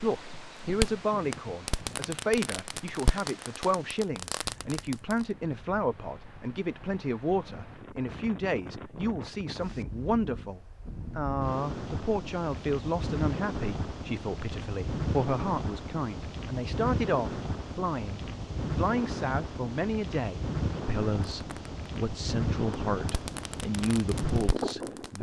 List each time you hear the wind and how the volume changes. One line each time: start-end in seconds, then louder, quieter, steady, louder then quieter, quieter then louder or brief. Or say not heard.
0.0-25.1 louder.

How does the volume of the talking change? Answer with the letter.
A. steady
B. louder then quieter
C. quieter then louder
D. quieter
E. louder
A.